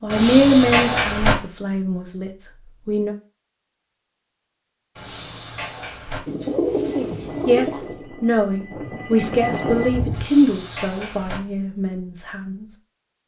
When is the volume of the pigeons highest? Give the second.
7 s.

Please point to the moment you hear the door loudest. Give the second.
1 s.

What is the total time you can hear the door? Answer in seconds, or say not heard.
4 s.